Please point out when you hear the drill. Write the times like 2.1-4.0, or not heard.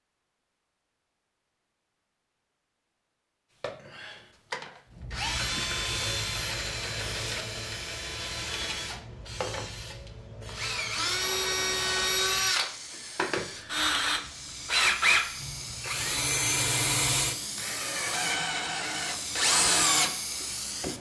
3.6-20.9.